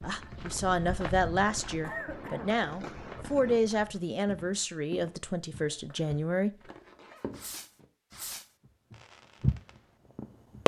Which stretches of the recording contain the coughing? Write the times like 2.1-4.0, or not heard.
1.8-2.5, 5.7-7.3.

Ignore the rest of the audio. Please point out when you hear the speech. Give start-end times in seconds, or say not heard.
0.0-6.5.